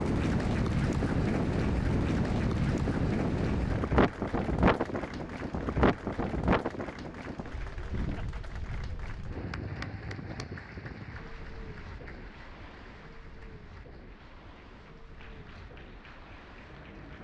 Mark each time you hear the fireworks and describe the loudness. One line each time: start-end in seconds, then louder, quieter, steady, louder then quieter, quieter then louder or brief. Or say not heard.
not heard.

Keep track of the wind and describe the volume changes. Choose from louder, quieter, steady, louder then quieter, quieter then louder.
quieter.